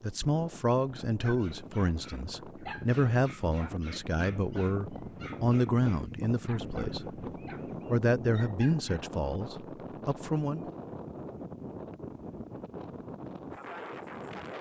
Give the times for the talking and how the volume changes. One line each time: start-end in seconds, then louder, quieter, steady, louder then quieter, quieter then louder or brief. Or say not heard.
0.0-7.2 steady
7.9-10.7 brief.